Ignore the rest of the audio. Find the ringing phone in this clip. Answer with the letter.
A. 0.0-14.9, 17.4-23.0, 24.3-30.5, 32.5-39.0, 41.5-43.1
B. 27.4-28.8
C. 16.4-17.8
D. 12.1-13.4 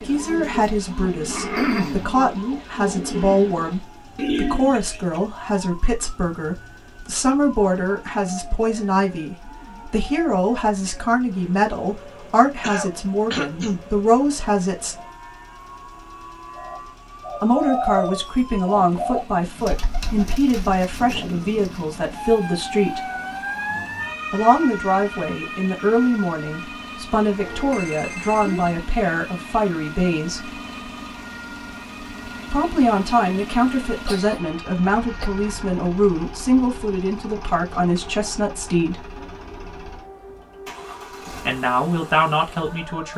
B.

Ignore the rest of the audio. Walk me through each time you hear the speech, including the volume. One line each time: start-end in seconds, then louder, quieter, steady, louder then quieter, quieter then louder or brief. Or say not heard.
0.0-14.9 steady
17.4-23.0 steady
24.3-30.5 steady
32.5-39.0 steady
41.5-43.1 brief.